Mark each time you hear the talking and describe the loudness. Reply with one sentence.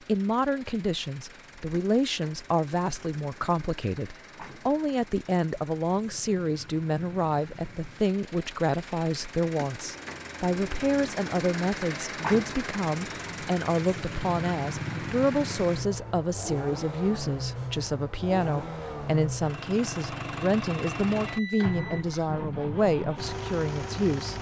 You can hear the talking from 0.1 to 24.3 s, at a steady volume.